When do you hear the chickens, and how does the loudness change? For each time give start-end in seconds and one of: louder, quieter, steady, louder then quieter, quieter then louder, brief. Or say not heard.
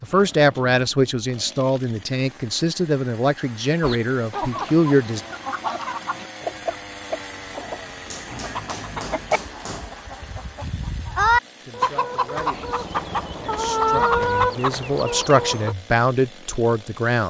3.8-15.8 louder.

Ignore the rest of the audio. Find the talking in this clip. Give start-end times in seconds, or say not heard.
0.0-5.2, 11.7-17.2.